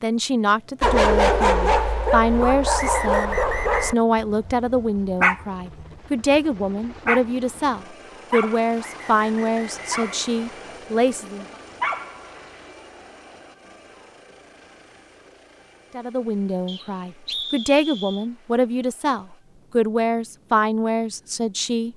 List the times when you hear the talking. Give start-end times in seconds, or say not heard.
0.0-11.4, 15.9-21.9.